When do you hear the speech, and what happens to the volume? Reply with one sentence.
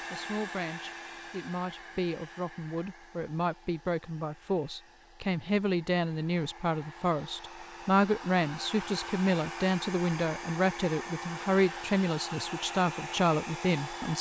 The speech can be heard from 0.0 to 14.1 s, getting louder.